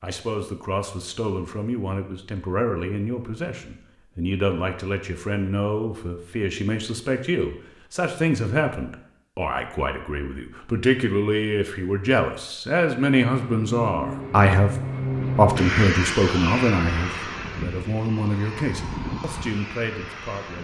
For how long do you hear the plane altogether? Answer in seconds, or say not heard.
7 s.